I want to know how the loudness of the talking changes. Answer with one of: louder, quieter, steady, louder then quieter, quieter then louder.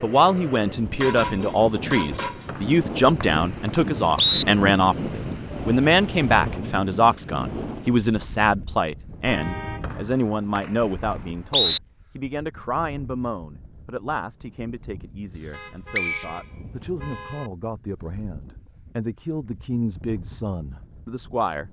quieter.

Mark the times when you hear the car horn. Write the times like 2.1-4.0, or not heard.
1.0-2.5, 9.2-9.9, 15.5-17.5.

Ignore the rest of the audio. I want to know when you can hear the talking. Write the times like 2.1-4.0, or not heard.
0.0-21.6.